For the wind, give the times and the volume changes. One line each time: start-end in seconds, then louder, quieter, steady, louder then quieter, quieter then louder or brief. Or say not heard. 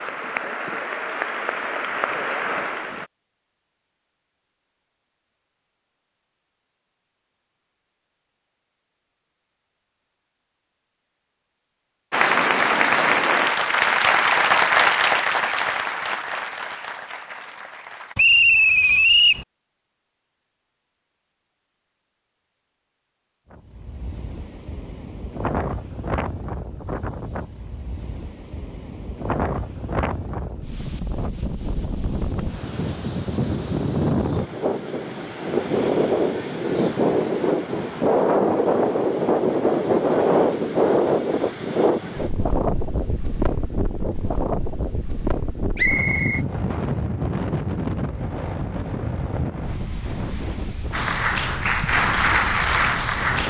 23.5-53.4 louder then quieter.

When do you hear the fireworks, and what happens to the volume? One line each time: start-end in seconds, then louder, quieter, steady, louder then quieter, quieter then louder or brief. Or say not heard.
not heard.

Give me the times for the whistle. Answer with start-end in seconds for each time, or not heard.
18.1-19.4, 45.8-46.4.